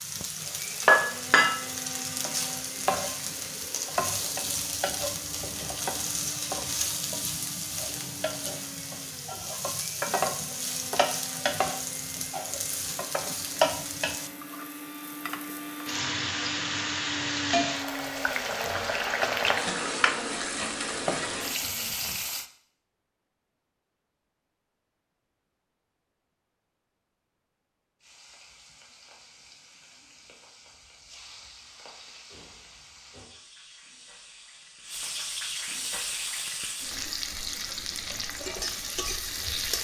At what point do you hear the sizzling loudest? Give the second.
1 s.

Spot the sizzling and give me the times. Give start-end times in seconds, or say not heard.
0.0-22.4, 28.0-39.8.